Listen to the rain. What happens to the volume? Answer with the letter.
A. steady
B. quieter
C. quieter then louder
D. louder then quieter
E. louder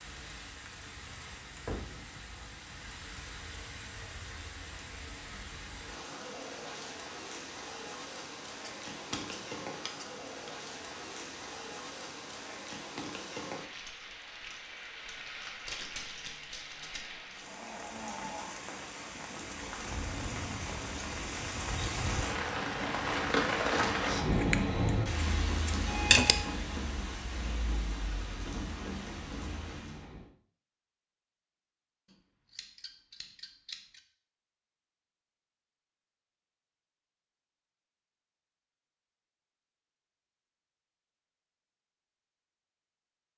E.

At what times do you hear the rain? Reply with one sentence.
You can hear the rain from 0.0 to 30.3 s.